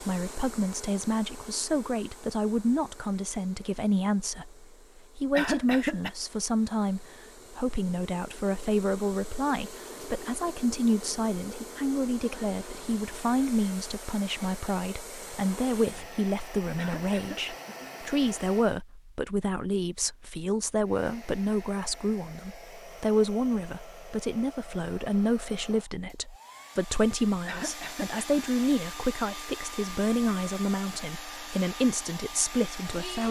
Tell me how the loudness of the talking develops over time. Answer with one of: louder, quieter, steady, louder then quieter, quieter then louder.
steady.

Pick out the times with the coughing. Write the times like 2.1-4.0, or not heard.
5.3-6.1, 16.8-17.8, 27.4-28.4.